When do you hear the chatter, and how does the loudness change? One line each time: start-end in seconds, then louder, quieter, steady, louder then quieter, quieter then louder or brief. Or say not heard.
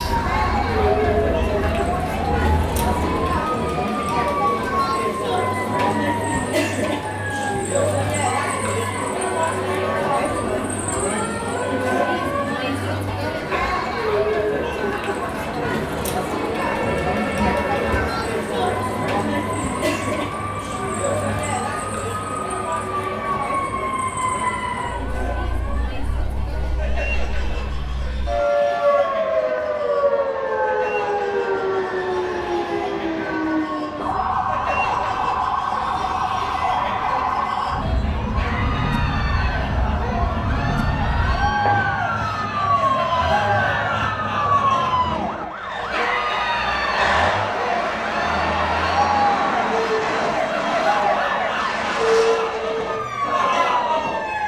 0.0-54.4 quieter then louder.